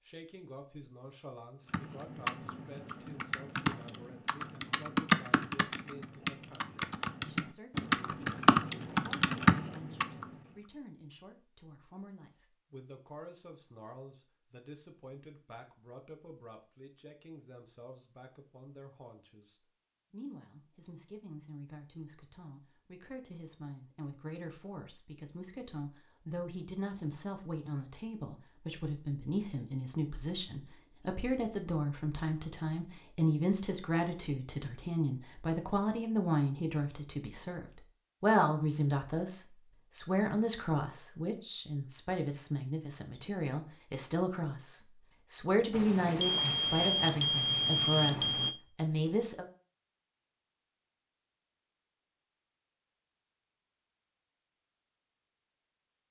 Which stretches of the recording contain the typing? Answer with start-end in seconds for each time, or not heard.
1.7-10.1.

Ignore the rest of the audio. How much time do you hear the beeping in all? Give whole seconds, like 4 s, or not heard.
3 s.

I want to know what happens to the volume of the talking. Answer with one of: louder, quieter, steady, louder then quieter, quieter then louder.
louder.